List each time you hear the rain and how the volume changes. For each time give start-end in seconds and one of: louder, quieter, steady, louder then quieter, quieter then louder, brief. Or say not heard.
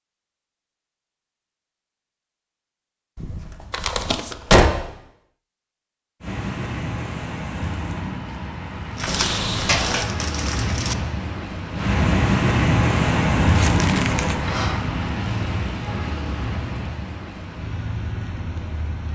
6.2-19.1 louder then quieter.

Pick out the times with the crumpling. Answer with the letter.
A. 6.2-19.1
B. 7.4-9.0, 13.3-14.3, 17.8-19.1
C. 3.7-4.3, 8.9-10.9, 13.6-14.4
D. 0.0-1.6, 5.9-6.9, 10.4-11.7
C.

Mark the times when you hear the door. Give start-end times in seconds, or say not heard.
3.1-4.8, 9.1-10.1, 13.6-14.8.